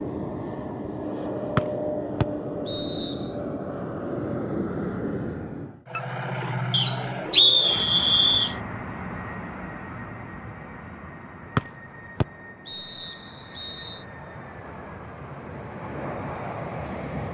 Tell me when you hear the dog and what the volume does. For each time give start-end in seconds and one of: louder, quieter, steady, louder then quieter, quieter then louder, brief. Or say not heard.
not heard.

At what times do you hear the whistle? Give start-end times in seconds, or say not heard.
2.2-3.1, 6.7-8.6, 12.2-14.0.